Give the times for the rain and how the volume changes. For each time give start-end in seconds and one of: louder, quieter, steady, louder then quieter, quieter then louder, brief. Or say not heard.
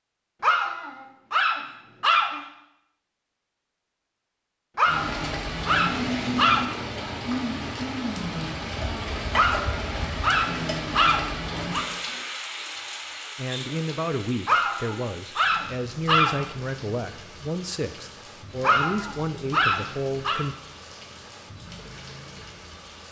4.8-23.0 quieter.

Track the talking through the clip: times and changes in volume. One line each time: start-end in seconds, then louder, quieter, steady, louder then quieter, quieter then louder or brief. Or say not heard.
13.3-20.6 steady.